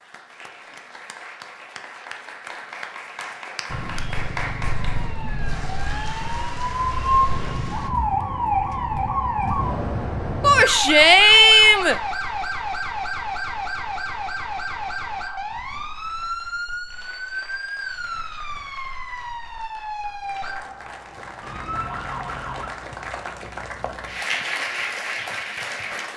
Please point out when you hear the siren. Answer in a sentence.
The siren can be heard from 3.7 to 22.7 s.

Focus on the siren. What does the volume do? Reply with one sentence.
The loudness of the siren goes down.